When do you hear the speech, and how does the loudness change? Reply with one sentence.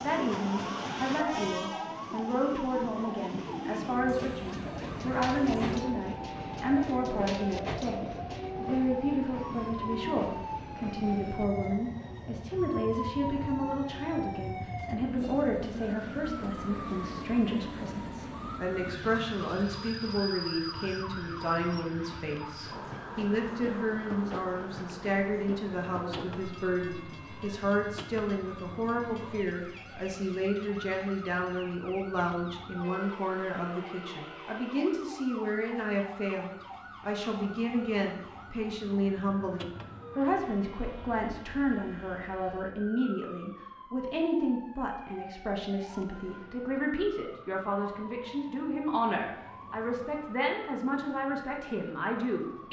The speech can be heard from 0.0 to 52.6 s, at a steady volume.